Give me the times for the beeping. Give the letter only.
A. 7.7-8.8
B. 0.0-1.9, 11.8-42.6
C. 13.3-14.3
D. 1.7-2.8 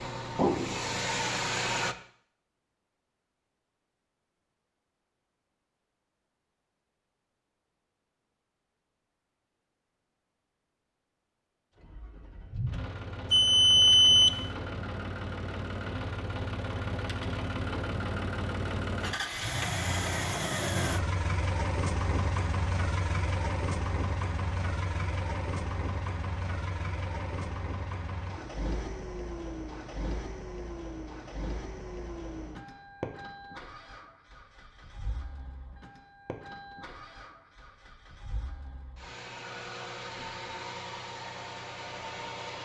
C.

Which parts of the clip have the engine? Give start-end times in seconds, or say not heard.
0.0-1.9, 11.8-42.6.